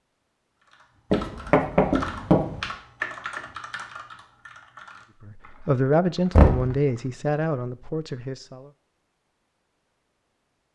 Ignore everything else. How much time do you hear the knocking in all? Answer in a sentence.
You can hear the knocking for 2 seconds altogether.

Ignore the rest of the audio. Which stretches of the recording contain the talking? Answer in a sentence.
You can hear the talking from 5.2 to 8.7 s.